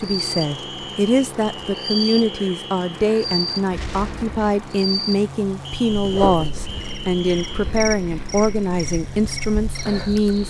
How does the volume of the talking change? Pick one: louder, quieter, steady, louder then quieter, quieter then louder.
steady.